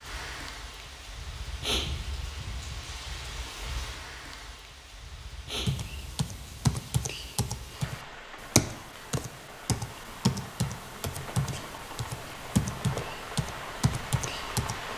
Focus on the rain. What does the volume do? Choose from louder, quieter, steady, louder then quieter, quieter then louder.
quieter then louder.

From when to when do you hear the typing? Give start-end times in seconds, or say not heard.
5.7-14.9.